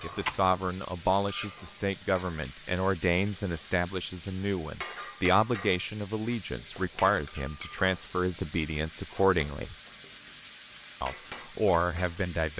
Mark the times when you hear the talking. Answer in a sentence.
You can hear the talking from 0.0 to 9.8 s and from 11.0 to 12.5 s.